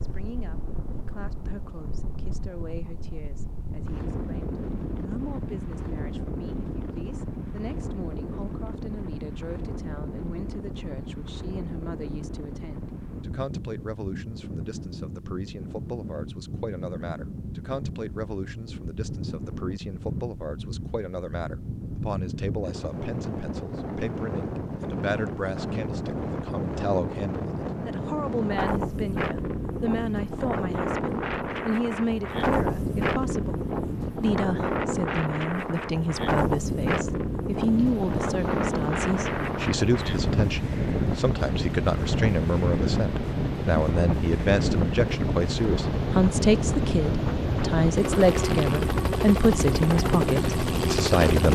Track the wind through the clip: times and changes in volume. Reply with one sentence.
The wind can be heard from 0.0 to 51.5 s, getting louder.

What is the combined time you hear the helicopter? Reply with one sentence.
The helicopter can be heard for 14 seconds in total.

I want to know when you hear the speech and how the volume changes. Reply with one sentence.
The speech can be heard from 0.0 to 51.5 s, getting louder.